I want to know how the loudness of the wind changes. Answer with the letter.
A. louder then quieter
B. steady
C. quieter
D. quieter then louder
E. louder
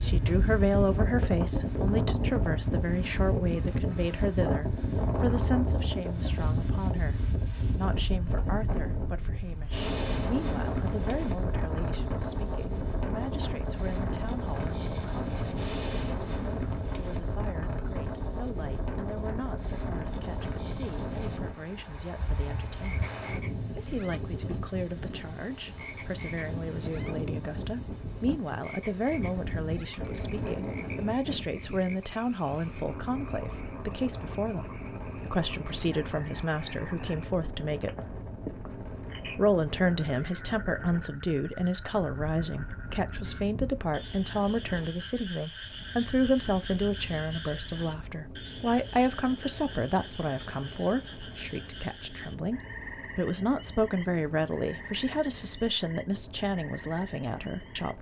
C.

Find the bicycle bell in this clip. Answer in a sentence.
The bicycle bell can't be heard in this clip.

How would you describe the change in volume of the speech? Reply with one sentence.
The loudness of the speech goes down, then up.